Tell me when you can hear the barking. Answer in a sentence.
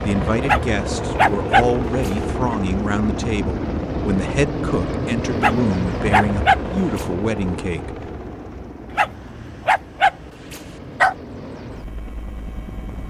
The barking can be heard from 0.4 to 2.5 s, from 5.3 to 7.0 s and from 8.9 to 11.2 s.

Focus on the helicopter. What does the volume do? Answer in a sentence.
The loudness of the helicopter goes down.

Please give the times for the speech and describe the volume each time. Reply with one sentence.
You can hear the speech from 0.0 to 8.1 s, at a steady volume.